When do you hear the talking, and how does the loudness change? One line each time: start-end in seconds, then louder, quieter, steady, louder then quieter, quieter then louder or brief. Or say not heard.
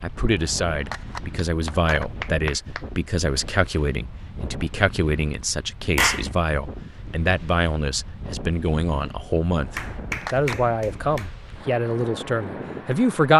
0.0-13.3 steady.